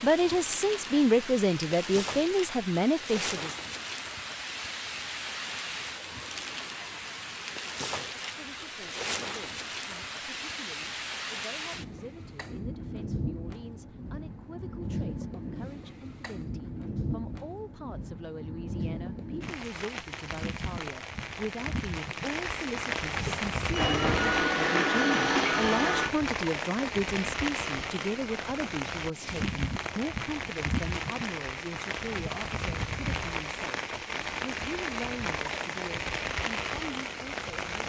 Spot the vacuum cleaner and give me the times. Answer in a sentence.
You can hear the vacuum cleaner from 23.2 to 26.1 s.